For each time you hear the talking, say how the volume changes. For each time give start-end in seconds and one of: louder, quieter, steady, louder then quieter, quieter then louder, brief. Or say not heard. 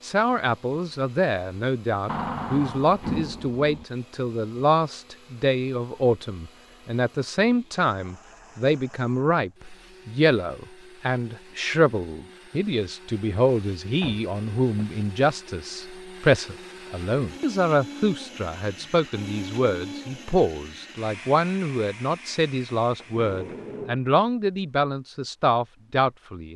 0.0-26.5 steady.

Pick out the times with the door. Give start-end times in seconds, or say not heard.
2.0-3.9, 14.0-15.0, 22.9-24.1.